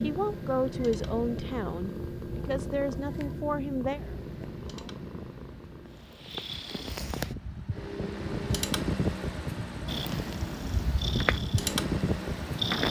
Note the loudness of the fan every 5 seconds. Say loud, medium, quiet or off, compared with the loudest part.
quiet, loud, loud.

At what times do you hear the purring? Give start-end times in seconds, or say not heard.
0.0-7.3, 9.8-12.8.